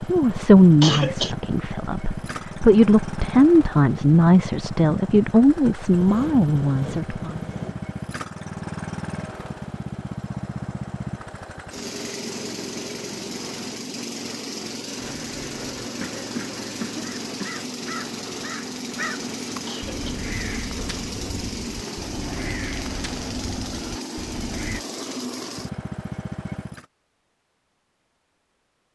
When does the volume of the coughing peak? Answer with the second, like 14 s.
1 s.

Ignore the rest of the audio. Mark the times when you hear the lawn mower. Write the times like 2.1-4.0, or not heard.
0.0-26.9.